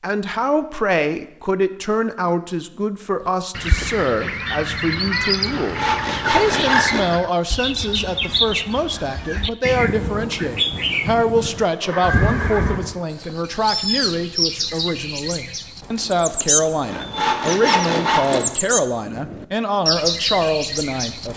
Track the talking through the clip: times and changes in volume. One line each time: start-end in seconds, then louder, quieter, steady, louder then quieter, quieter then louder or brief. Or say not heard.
0.0-21.3 steady.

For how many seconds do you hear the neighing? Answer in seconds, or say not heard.
2 s.